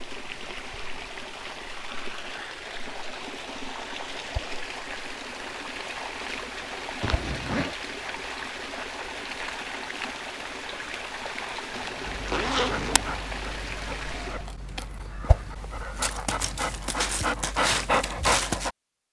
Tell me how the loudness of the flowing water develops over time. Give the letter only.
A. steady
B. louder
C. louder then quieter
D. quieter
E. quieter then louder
A.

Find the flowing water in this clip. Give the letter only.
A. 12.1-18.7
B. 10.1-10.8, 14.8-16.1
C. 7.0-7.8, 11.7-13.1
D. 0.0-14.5
D.